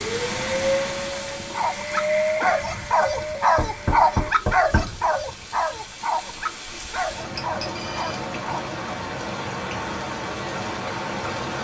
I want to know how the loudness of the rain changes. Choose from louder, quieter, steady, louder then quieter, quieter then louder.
quieter then louder.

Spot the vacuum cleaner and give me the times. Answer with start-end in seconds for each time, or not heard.
0.0-4.3.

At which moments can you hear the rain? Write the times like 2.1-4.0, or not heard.
0.0-11.6.